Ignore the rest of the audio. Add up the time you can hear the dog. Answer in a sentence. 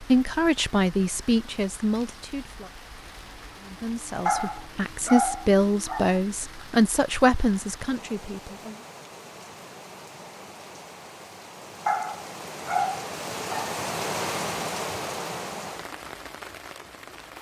The dog can be heard for 4 seconds in total.